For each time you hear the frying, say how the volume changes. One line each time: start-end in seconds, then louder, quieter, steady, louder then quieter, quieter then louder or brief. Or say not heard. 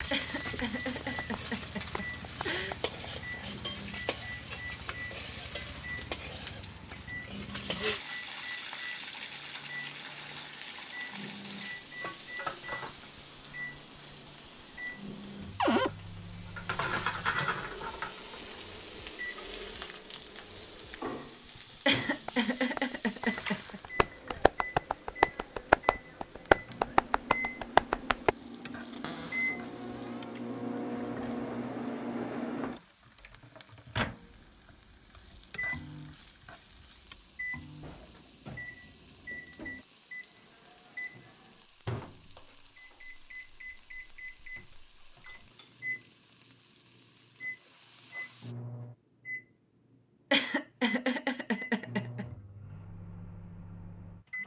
0.0-48.5 quieter.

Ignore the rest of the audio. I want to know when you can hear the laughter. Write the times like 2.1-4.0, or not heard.
0.1-2.8, 21.9-23.8, 50.3-52.2.